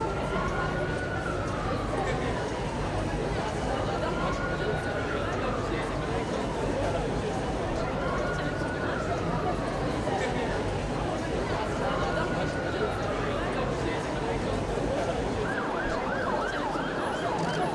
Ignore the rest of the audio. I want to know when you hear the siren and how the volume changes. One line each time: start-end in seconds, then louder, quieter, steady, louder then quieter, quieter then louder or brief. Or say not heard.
0.0-17.7 steady.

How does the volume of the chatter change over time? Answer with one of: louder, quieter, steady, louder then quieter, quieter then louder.
steady.